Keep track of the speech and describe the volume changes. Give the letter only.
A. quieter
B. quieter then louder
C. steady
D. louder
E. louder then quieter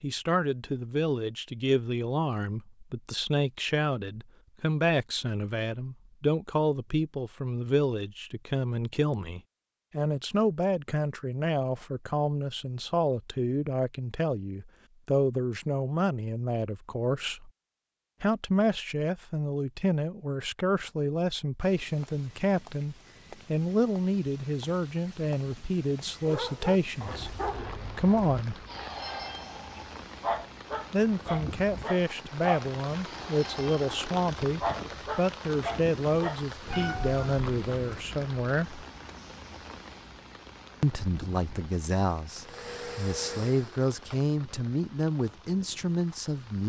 C.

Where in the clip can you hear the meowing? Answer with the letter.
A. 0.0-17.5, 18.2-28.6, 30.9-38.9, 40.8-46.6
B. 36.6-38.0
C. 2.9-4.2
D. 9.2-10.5
B.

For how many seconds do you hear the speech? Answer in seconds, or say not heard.
42 s.